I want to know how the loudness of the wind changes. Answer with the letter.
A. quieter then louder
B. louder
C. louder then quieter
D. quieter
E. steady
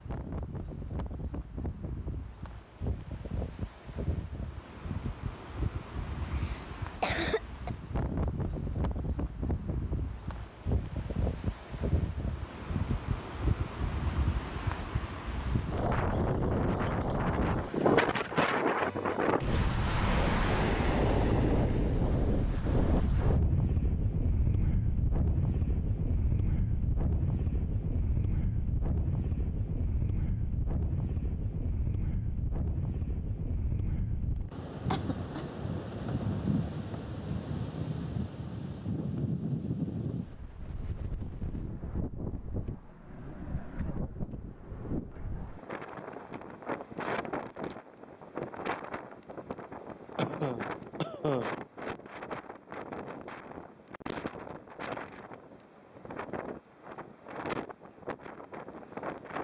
C.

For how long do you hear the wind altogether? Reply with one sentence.
You can hear the wind for 59 seconds altogether.